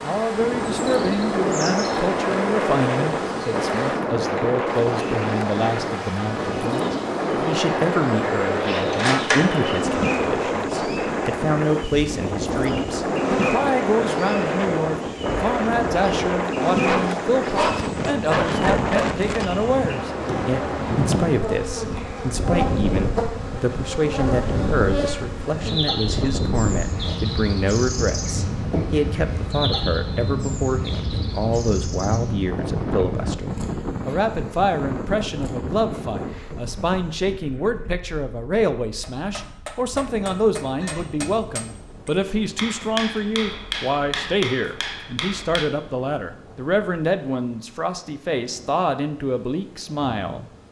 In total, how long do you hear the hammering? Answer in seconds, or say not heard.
7 s.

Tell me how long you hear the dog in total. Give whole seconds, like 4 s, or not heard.
2 s.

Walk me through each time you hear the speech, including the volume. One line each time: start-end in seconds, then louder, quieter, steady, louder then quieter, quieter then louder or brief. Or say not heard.
0.0-50.6 steady.